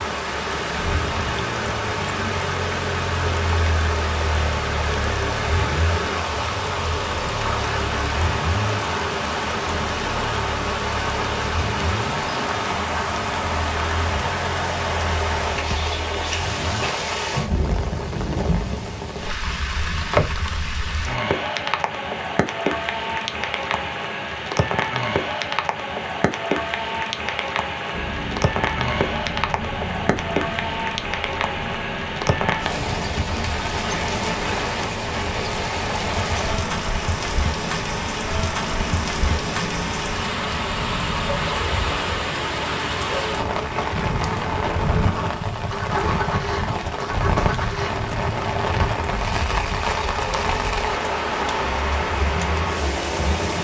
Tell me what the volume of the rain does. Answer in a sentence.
The volume of the rain stays about the same.